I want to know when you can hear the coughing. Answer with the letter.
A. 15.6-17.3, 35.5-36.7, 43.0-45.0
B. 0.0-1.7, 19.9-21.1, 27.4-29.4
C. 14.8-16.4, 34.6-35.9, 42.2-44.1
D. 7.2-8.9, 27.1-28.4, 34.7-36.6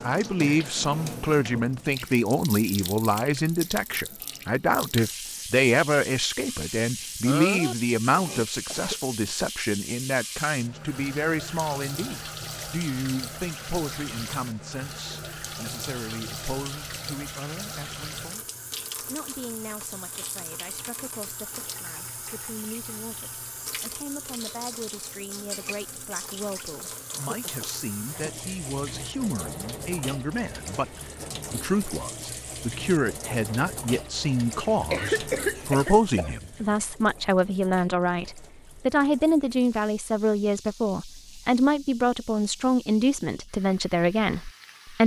D.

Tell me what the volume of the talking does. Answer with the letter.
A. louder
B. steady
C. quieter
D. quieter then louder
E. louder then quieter
D.